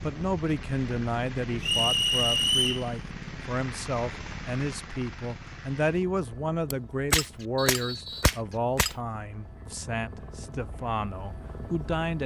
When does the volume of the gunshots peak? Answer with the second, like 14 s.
7 s.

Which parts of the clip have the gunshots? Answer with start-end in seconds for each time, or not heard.
6.7-8.9.